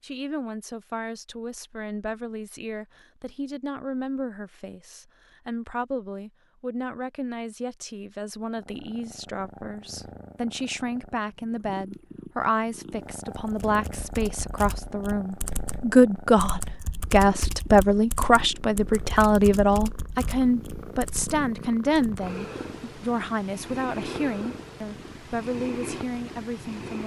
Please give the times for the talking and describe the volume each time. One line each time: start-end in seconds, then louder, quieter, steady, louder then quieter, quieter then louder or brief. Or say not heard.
0.0-27.0 louder then quieter.